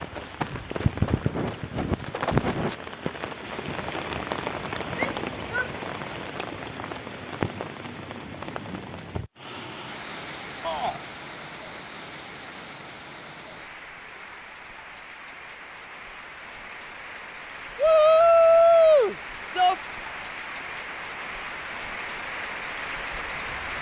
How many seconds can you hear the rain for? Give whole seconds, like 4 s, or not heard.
24 s.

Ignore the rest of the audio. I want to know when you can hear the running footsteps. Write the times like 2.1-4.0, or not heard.
0.0-2.8.